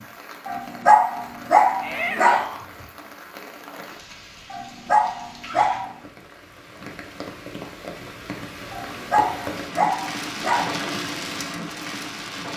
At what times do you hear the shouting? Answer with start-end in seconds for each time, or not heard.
1.8-2.6.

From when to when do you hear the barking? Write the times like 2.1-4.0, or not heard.
0.5-2.5, 4.5-6.0, 8.7-10.7.